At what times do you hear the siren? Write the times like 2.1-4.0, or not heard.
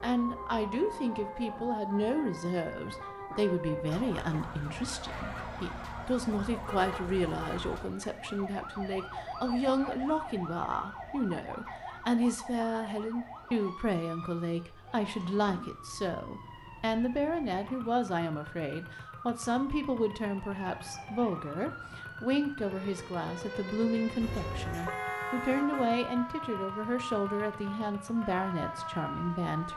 0.0-29.7.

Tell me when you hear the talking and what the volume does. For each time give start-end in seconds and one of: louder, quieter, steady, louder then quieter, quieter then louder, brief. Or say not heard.
0.0-29.7 steady.